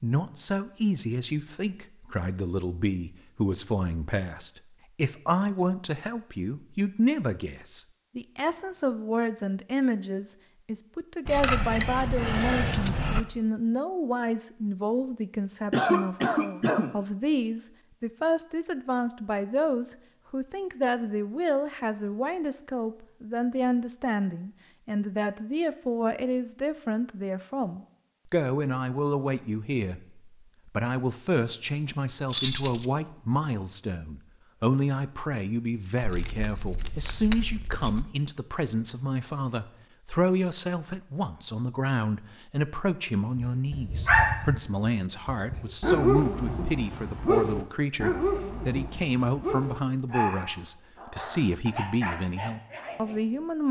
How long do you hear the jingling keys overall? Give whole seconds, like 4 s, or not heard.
5 s.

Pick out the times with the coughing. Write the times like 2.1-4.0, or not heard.
15.7-16.9.